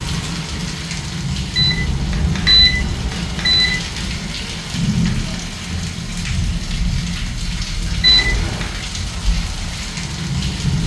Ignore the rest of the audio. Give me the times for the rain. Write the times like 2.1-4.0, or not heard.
0.0-10.8.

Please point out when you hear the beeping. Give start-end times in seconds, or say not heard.
1.6-3.8, 8.0-8.7.